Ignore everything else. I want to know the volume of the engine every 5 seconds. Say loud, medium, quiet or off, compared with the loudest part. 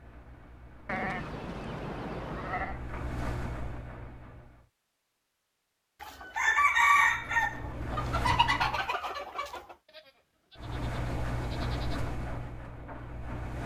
medium, loud, loud.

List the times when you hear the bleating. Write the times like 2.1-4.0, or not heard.
0.8-2.8, 9.8-12.0.